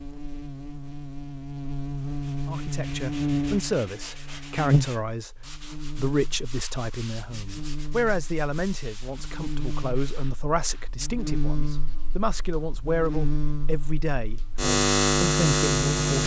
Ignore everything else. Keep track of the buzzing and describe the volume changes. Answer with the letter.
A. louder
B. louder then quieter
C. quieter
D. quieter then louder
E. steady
D.